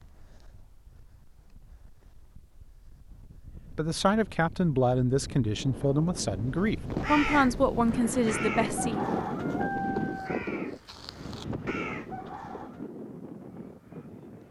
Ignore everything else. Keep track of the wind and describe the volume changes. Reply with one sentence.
The volume of the wind goes up, then down.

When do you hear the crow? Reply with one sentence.
You can hear the crow from 6.3 to 12.8 s.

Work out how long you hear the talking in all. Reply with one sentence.
You can hear the talking for 5 seconds altogether.